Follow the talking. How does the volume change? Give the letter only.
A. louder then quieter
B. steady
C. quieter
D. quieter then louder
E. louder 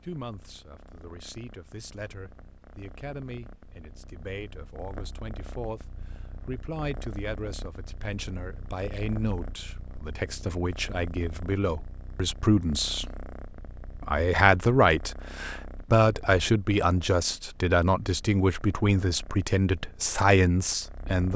E.